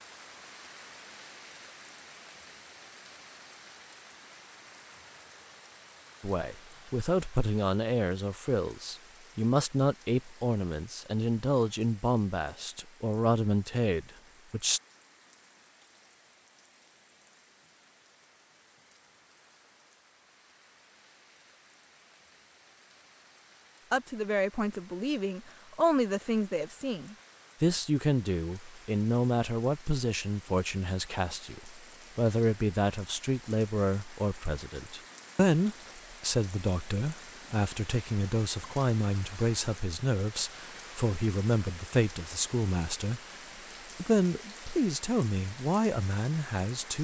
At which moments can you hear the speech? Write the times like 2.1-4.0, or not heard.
6.2-14.8, 23.9-43.2, 44.0-47.0.